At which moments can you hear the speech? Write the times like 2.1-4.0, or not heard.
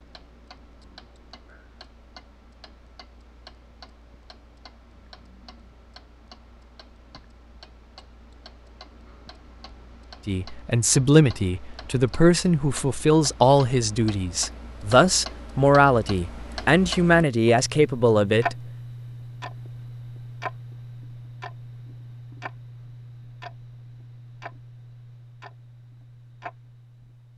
10.2-18.6.